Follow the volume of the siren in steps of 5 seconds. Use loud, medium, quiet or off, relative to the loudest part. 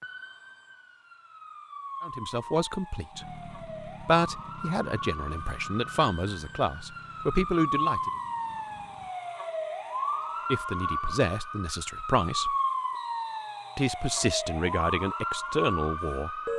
medium, loud, loud, loud.